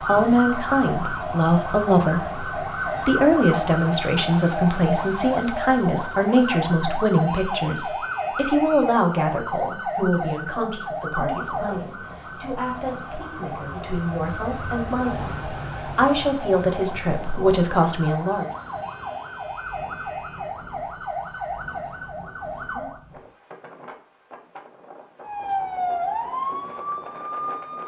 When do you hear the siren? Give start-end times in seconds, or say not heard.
0.0-23.0, 25.2-27.8.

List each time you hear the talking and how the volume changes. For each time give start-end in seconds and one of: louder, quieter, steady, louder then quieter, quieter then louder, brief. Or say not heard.
0.0-18.4 quieter then louder.